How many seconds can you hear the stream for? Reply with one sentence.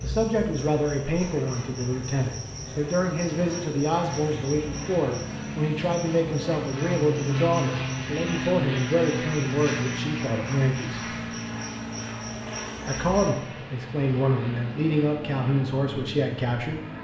You can't hear the stream here.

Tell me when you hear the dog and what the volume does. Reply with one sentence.
You can't hear the dog here.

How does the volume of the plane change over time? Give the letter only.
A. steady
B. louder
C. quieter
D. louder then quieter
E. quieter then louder
D.